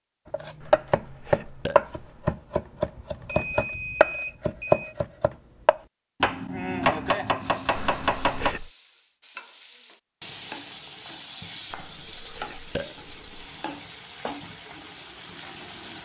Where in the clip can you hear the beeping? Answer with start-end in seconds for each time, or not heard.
3.2-5.0, 12.2-13.9.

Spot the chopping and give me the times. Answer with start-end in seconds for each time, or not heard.
0.3-8.6.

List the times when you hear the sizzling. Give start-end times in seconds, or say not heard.
7.3-16.0.